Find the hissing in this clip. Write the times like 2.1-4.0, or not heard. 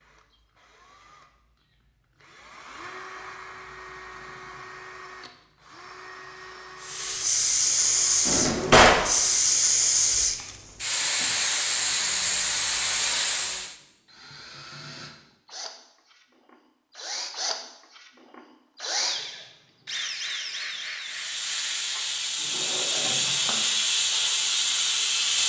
6.8-13.8, 21.0-25.4.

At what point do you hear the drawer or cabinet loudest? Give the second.
9 s.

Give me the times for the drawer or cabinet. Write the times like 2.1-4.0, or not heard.
8.2-9.1, 22.5-23.6.